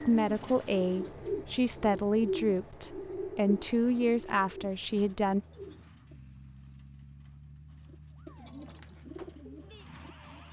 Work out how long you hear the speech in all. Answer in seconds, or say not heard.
5 s.